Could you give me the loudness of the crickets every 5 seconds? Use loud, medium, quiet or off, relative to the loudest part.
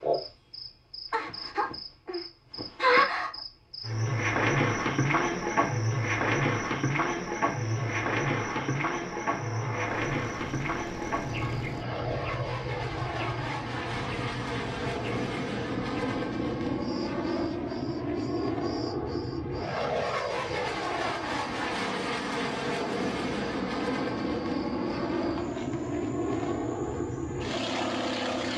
loud, loud, medium, quiet, quiet, quiet.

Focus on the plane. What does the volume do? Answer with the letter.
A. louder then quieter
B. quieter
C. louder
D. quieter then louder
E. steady
C.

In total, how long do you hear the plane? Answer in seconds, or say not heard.
21 s.